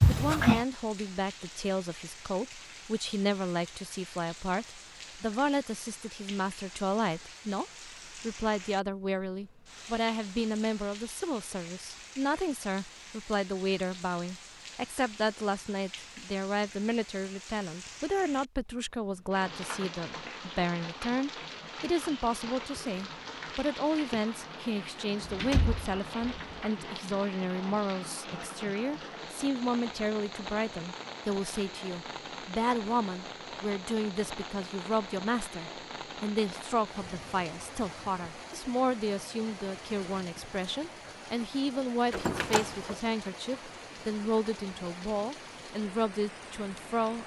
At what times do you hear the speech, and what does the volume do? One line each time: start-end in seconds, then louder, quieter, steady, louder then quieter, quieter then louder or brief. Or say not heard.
0.1-47.2 steady.